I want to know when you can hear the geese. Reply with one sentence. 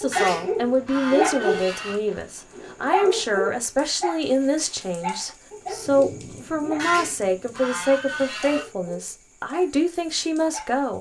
You can hear the geese from 0.1 to 1.9 s and from 6.8 to 8.7 s.